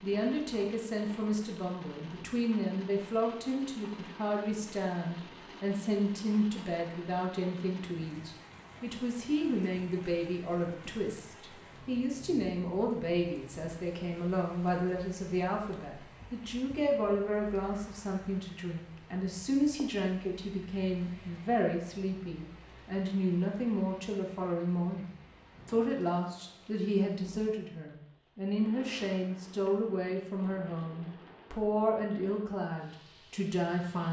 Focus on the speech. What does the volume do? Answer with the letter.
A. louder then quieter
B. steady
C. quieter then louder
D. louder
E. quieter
B.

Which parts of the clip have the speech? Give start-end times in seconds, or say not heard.
0.0-34.0.